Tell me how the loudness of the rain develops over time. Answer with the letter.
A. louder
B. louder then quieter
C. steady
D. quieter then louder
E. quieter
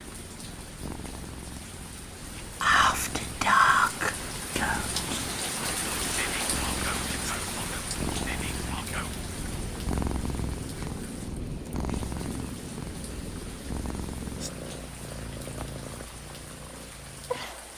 B.